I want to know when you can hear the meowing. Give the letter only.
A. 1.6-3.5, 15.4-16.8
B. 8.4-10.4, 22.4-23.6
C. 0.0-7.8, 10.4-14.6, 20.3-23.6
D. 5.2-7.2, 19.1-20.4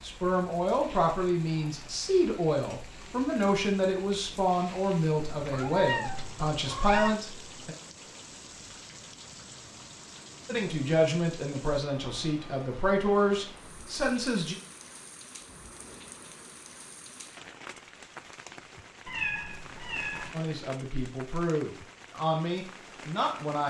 D.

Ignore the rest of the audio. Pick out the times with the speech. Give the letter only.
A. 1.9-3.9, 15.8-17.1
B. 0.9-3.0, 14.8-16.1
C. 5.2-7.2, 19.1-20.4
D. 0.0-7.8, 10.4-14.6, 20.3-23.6
D.